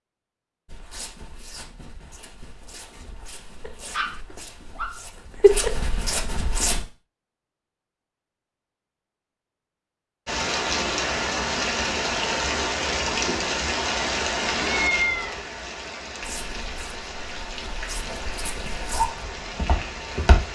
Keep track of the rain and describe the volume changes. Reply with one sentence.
The volume of the rain goes down.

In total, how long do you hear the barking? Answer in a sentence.
You can hear the barking for 2 seconds altogether.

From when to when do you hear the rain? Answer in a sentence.
You can hear the rain from 10.2 to 20.5 s.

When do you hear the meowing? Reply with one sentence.
You can hear the meowing from 14.7 to 15.4 s.